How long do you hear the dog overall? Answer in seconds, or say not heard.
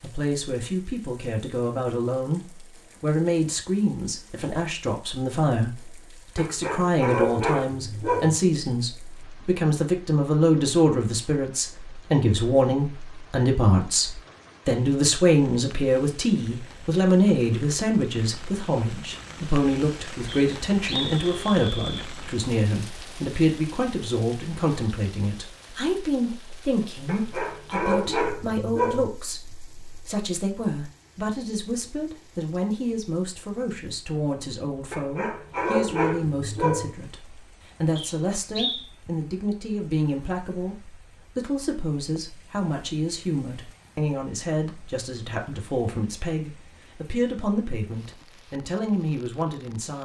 6 s.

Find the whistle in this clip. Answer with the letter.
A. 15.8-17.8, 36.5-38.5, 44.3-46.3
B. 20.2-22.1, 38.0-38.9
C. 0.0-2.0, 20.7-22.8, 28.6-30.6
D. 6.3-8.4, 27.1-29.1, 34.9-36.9
B.